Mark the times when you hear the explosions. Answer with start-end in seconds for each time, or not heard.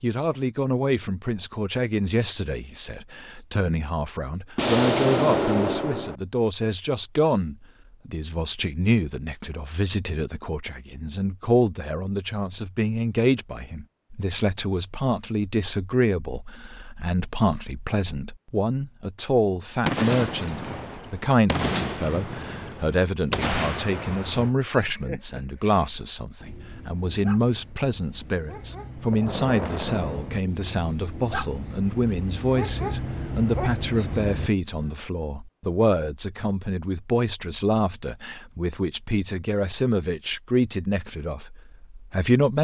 4.5-6.2, 19.9-24.5, 29.1-30.4.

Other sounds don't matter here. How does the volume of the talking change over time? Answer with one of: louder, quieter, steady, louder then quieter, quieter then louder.
steady.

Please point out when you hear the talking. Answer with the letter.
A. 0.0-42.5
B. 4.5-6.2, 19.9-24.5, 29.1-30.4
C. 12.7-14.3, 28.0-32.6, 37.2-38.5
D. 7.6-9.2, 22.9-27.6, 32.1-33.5
A.